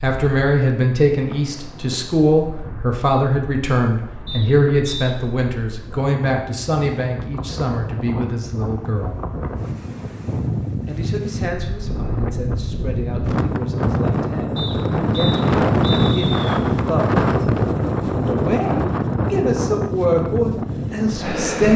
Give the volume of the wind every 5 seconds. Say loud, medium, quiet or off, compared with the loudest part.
quiet, quiet, medium, loud, medium.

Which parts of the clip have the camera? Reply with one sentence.
You can't hear the camera here.